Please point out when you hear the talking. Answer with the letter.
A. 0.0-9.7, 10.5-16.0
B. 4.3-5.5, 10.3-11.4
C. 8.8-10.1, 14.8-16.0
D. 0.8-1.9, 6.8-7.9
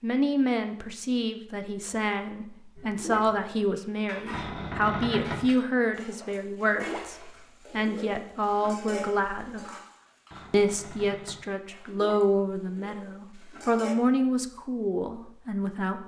A.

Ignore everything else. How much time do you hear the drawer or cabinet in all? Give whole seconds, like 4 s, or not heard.
2 s.